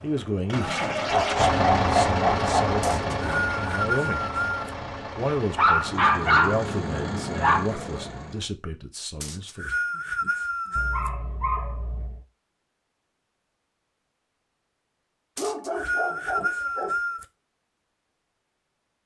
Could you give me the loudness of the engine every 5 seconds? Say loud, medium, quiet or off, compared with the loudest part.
loud, medium, off, off.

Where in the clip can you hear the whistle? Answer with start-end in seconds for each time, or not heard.
2.8-4.7, 9.2-11.1, 15.3-17.2.